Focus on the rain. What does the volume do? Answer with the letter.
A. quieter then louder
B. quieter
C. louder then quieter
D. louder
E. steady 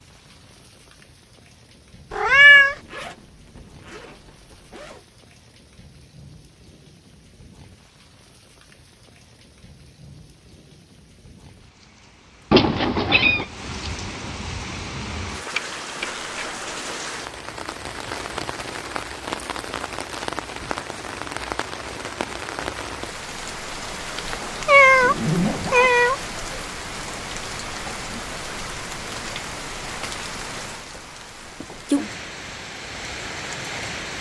D.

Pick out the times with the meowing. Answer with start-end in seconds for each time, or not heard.
2.1-2.8, 12.5-13.4, 24.1-26.1.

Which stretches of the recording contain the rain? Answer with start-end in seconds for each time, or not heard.
0.0-34.1.